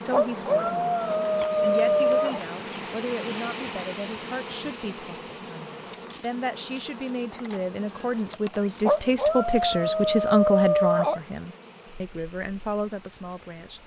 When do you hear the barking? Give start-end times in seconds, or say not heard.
0.1-2.4, 8.8-11.2.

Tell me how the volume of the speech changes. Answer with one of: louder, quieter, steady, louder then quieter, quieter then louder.
louder then quieter.